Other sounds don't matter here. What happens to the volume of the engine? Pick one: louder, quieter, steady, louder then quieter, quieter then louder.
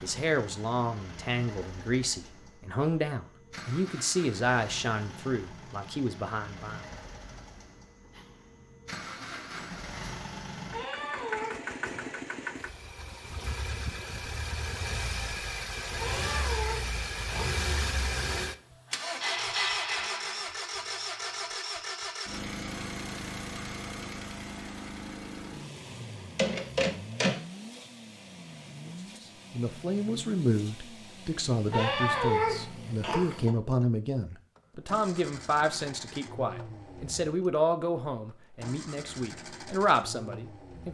louder then quieter.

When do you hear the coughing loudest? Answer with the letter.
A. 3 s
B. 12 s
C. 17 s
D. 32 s
D.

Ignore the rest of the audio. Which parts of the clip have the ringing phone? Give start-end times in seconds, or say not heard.
26.4-27.4.